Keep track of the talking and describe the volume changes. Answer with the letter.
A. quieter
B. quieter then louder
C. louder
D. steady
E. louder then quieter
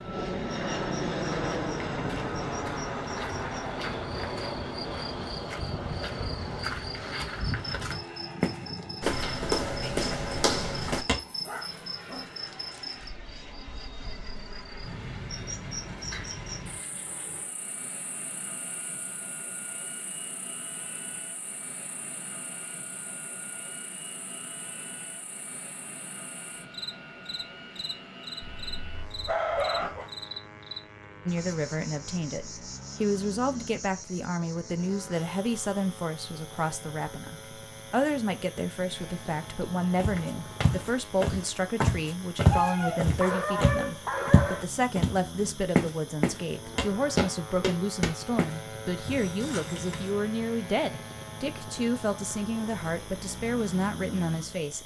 D.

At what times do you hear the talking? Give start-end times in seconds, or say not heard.
31.2-54.8.